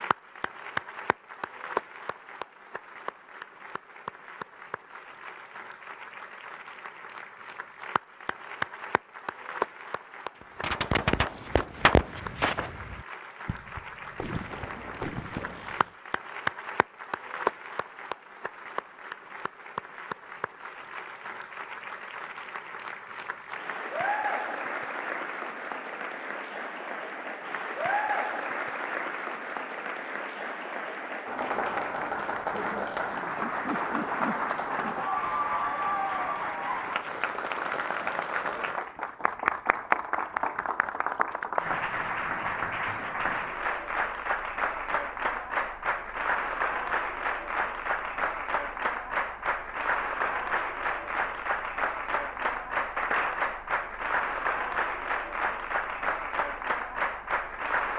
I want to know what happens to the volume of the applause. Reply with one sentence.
The loudness of the applause goes up.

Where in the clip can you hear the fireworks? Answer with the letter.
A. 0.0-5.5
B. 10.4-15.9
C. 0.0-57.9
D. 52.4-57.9
B.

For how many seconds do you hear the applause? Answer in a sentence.
The applause can be heard for 58 seconds in total.